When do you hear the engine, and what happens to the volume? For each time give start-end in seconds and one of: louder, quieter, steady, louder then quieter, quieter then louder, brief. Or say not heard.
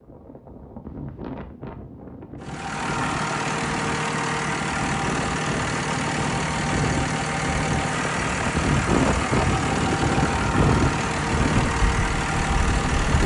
2.4-13.2 steady.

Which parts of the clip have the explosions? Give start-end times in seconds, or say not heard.
not heard.